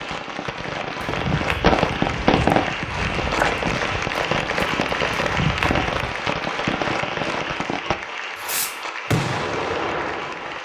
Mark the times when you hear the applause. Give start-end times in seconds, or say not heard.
0.0-10.5.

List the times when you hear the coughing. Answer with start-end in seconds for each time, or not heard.
not heard.